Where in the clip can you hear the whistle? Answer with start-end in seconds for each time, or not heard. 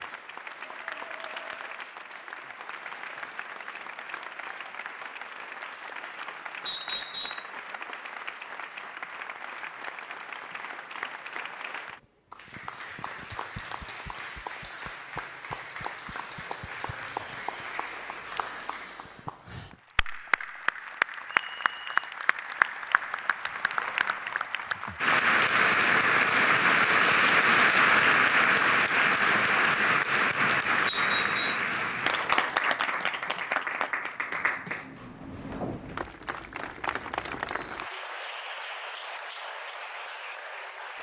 6.7-7.5, 21.2-22.1, 30.9-31.6.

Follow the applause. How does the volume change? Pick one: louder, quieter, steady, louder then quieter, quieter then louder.
louder then quieter.